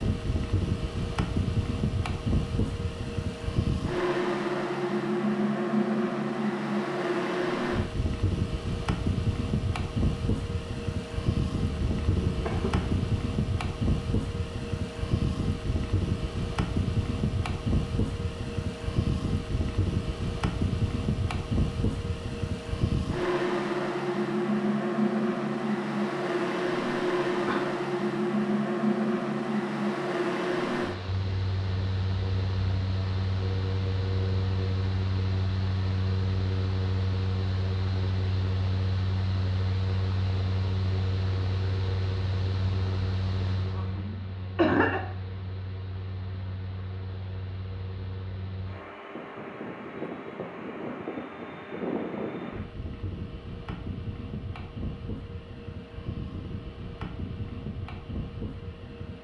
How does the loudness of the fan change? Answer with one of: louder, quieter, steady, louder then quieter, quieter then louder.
quieter.